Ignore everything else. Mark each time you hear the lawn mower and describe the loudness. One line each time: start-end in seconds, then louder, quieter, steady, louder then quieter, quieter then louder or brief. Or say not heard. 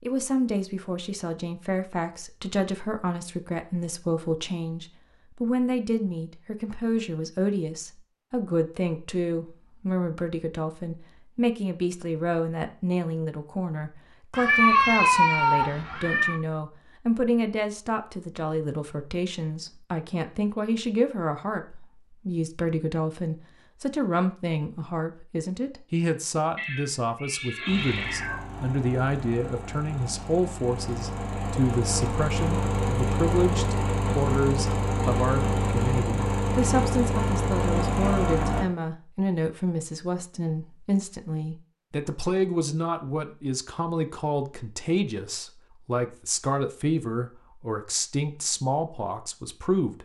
27.6-38.6 louder.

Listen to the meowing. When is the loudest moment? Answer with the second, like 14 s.
15 s.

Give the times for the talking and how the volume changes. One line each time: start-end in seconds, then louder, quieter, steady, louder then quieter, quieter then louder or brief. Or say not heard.
0.0-50.0 steady.